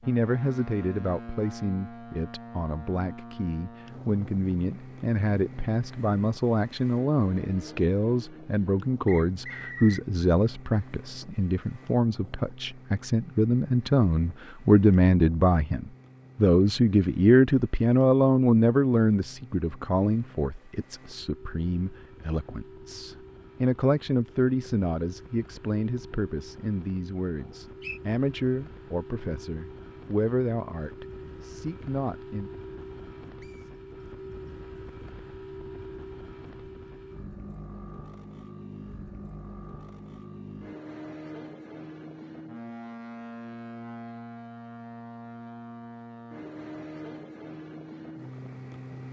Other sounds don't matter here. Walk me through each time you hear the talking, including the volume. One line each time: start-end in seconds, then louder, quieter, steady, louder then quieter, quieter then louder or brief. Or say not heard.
0.0-32.5 louder then quieter.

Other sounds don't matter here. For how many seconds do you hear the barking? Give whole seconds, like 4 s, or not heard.
not heard.